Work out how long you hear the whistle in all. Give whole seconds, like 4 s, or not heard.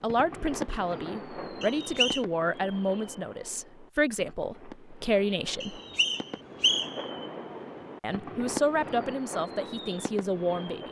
2 s.